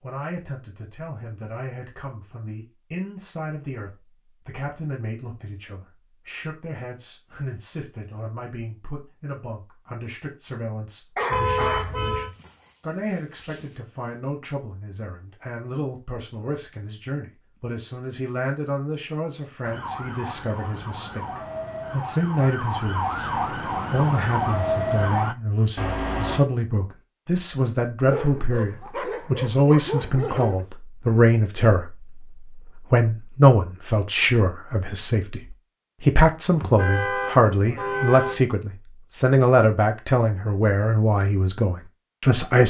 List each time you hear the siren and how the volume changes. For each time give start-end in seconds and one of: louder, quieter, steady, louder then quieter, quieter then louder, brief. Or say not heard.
19.6-25.4 louder.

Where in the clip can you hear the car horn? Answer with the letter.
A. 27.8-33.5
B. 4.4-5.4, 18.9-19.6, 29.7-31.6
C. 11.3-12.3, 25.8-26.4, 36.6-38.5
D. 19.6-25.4
C.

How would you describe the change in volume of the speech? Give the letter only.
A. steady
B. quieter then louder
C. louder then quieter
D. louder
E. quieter
D.